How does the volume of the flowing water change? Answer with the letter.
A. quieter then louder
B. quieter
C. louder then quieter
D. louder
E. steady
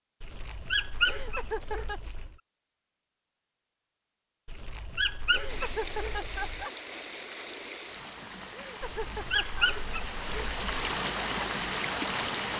D.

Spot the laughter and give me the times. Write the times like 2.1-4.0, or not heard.
1.1-2.0, 5.3-6.7, 8.5-9.7.